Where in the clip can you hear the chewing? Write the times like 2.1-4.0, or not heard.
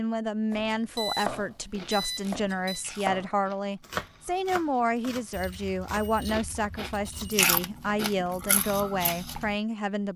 1.2-9.6.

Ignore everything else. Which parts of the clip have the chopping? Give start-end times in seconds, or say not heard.
0.5-8.7.